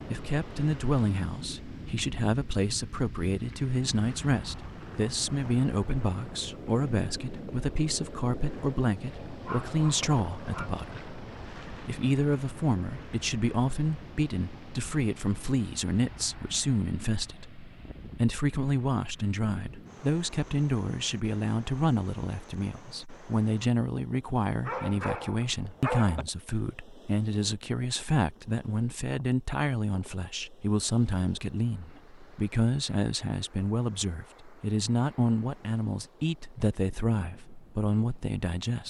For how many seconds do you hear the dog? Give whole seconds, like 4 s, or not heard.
3 s.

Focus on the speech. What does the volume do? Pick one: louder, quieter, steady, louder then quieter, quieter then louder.
steady.